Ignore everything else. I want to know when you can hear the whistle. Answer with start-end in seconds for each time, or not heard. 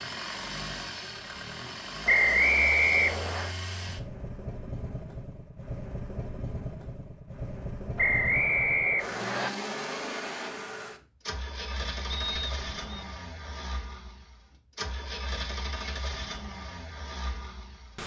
2.0-3.5, 8.0-9.5, 12.1-13.1.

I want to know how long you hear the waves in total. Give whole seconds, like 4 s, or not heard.
not heard.